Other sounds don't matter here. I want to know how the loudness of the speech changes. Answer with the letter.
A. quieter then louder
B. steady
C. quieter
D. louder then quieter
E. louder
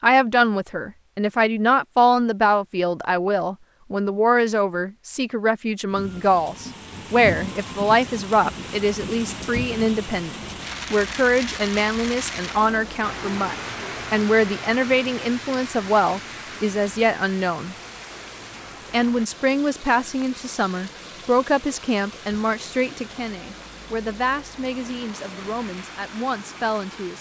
C.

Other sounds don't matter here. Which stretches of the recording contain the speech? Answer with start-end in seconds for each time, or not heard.
0.0-17.8, 18.9-27.1.